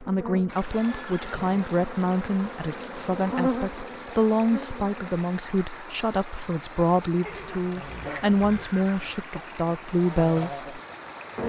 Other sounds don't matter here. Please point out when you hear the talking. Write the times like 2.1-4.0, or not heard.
0.1-10.8.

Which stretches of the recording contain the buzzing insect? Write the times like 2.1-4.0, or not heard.
0.0-5.2, 7.8-11.4.